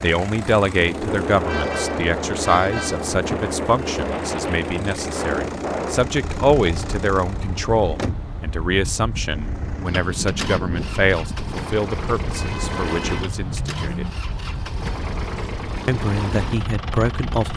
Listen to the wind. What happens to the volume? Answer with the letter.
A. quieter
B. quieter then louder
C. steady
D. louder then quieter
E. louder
A.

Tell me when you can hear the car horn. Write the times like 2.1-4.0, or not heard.
1.4-3.1, 12.3-14.2.